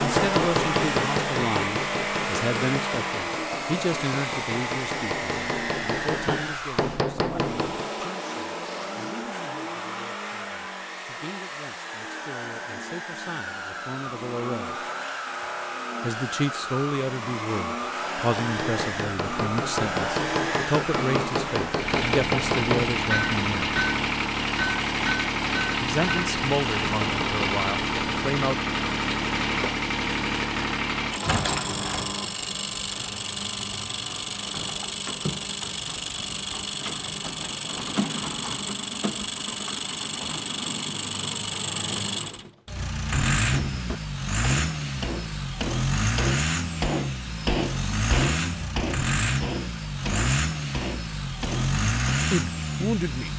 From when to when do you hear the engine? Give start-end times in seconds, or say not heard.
0.0-53.3.